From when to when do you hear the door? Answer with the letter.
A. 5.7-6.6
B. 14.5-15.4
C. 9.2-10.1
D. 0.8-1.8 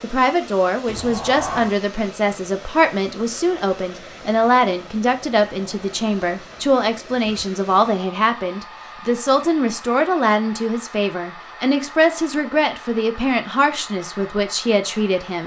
D.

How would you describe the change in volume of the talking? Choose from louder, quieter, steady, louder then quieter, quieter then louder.
steady.